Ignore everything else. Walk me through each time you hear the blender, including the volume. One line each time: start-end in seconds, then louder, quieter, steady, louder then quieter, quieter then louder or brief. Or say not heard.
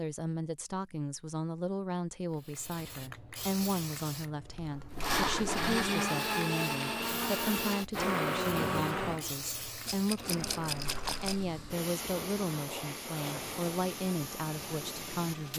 4.9-15.5 quieter.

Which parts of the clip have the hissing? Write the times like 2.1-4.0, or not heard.
2.4-15.5.